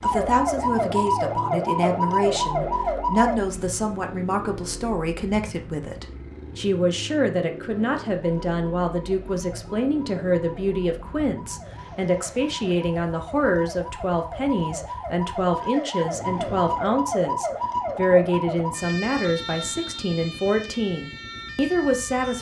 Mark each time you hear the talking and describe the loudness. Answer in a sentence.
The talking can be heard from 0.0 to 22.3 s, at a steady volume.